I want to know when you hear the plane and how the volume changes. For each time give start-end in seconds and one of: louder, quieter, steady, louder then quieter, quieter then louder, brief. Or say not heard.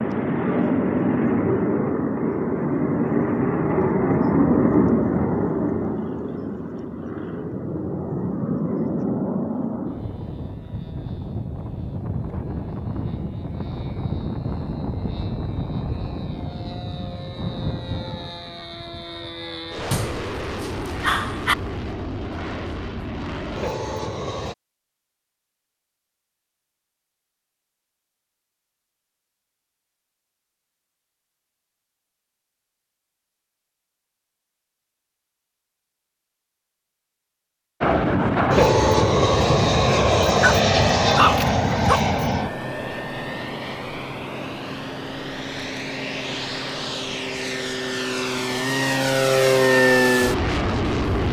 0.0-24.6 quieter
37.8-51.2 quieter then louder.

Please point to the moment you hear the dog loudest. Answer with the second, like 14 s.
41 s.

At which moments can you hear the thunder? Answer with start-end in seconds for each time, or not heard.
not heard.